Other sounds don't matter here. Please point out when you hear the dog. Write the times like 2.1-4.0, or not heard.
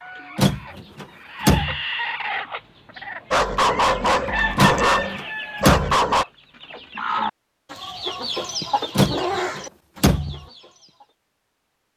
3.3-6.2.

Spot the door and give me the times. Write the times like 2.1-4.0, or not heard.
0.3-1.8, 4.5-6.0, 8.9-10.4.